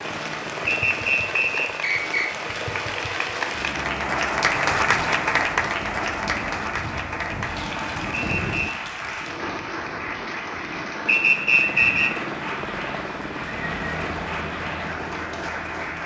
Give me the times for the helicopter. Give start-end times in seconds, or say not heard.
0.0-16.0.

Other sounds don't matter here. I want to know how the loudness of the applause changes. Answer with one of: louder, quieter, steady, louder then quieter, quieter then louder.
louder then quieter.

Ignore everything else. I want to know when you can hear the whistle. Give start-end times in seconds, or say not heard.
0.7-2.3, 8.2-8.7, 11.1-12.1.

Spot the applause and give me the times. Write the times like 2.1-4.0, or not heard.
0.0-16.0.